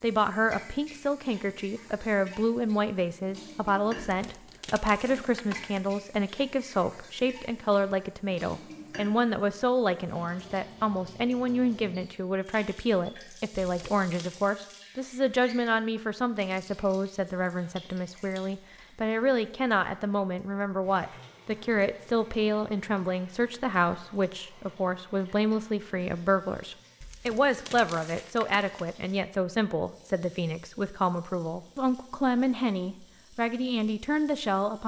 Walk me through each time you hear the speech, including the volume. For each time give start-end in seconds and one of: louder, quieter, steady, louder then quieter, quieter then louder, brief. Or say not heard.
0.0-34.8 steady.